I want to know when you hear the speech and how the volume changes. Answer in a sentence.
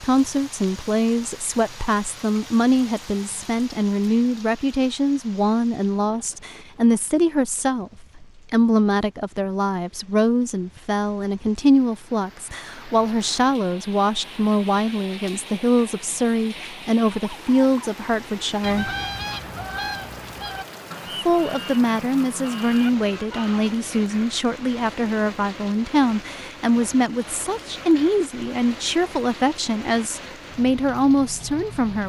You can hear the speech from 0.0 to 18.9 s, at a steady volume; and from 21.2 to 32.0 s, at a steady volume.